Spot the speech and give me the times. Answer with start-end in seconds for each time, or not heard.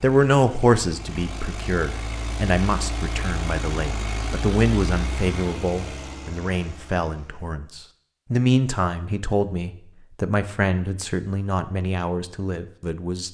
0.0-13.2.